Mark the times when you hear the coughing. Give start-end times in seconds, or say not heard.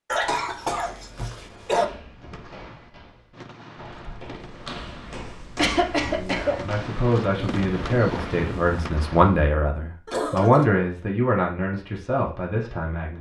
0.1-1.9, 5.5-6.6, 10.1-10.7.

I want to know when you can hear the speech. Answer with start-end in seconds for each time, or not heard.
6.0-13.1.